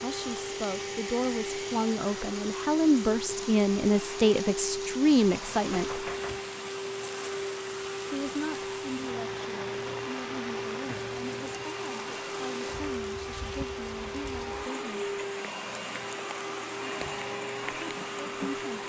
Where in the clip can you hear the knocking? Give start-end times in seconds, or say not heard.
5.7-6.4.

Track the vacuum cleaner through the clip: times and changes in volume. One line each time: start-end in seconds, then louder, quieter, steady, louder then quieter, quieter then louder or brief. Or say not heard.
0.0-18.8 steady.